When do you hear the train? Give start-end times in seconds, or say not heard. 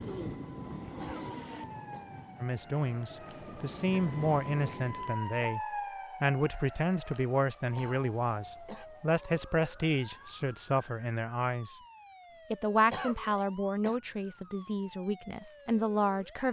0.0-5.2.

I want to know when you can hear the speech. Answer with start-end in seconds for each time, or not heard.
2.4-11.8, 12.5-16.4.